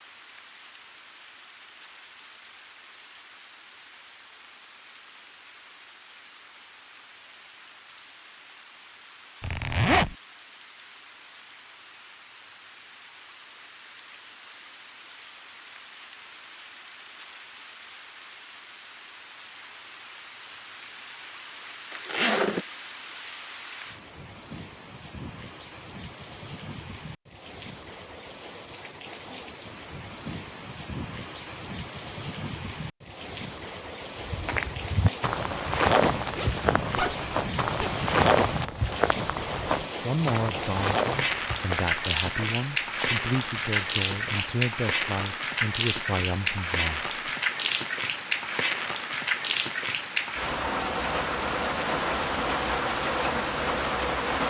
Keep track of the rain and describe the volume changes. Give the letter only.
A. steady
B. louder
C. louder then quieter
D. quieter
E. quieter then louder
B.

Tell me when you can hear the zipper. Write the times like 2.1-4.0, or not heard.
9.4-10.2, 21.9-22.6, 36.3-38.0.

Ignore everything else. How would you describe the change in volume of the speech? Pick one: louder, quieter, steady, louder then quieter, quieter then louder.
steady.